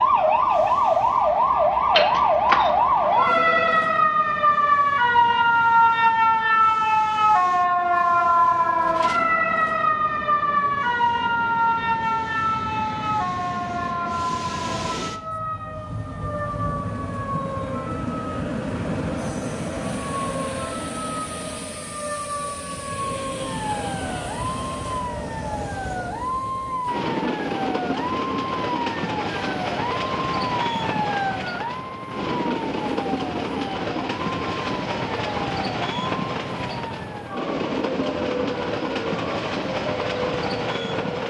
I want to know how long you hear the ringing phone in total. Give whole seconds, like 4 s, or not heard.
2 s.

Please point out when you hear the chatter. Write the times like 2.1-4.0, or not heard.
not heard.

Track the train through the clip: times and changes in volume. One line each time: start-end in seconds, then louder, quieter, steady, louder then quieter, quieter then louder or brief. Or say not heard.
0.0-41.2 louder.